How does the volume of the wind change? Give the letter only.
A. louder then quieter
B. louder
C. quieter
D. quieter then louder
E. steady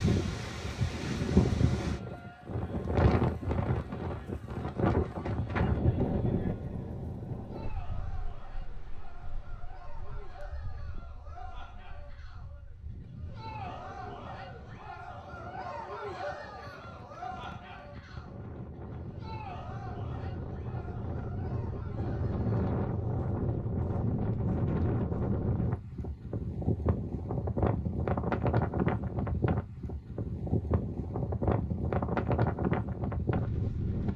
D.